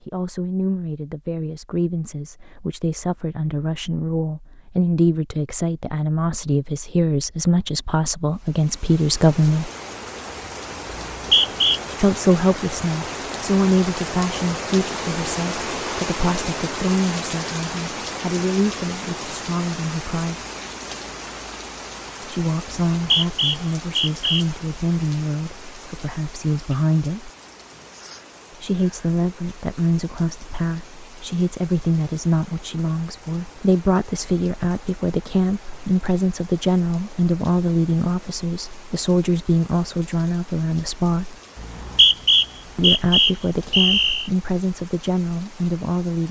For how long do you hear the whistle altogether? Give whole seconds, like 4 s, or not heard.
5 s.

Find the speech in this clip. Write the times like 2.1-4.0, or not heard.
0.0-9.7, 11.8-20.4, 22.2-27.3, 28.6-41.4, 42.8-46.2.